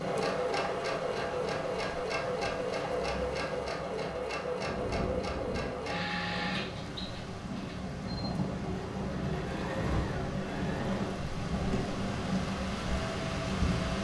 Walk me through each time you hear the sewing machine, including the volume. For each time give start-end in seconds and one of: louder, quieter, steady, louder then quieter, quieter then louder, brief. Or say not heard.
0.0-13.9 quieter.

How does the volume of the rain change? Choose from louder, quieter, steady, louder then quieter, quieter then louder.
louder.